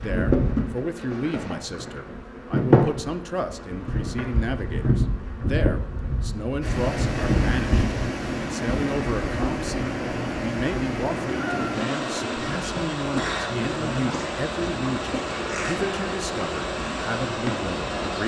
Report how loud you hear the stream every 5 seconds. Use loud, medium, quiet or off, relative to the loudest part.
off, loud, loud, loud.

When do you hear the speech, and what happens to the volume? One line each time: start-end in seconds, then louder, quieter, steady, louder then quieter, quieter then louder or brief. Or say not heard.
0.0-18.2 steady.